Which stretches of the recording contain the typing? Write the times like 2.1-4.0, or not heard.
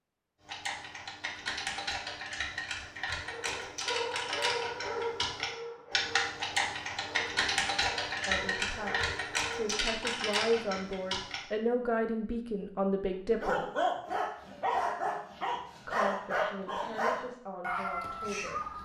0.5-11.4.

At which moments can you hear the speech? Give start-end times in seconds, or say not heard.
8.1-13.6, 15.8-18.7.